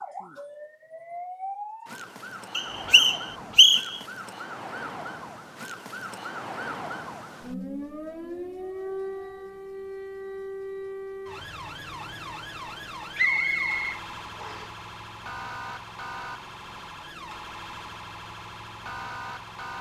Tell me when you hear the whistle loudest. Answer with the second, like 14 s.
4 s.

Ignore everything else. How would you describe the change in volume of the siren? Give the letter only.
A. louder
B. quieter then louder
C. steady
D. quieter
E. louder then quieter
C.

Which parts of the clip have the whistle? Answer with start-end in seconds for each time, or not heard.
2.5-4.0, 13.2-14.7.